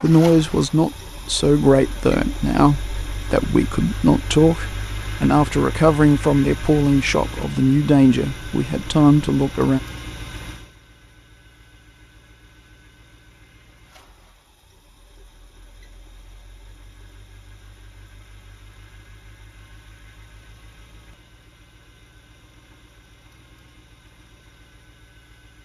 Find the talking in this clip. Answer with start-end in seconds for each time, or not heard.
0.0-9.8.